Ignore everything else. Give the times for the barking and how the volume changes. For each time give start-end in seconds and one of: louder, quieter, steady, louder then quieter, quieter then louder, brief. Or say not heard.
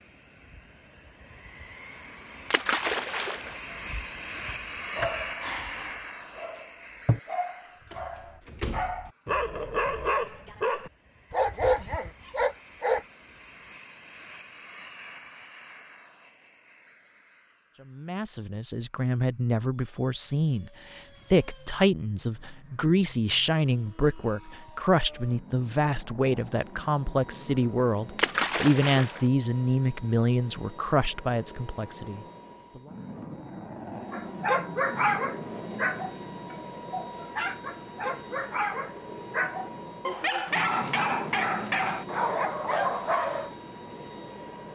3.7-13.1 louder
34.1-43.5 quieter then louder.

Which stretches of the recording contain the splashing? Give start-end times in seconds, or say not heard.
2.5-3.6, 28.1-29.2.